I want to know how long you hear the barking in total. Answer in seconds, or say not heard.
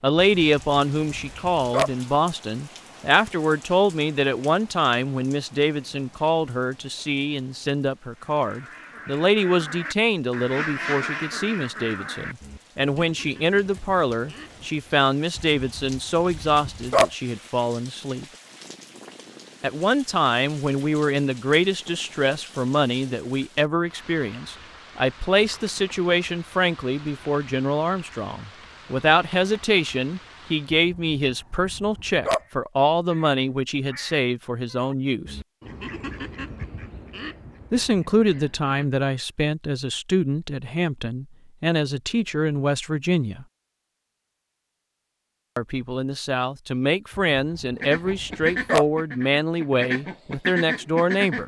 7 s.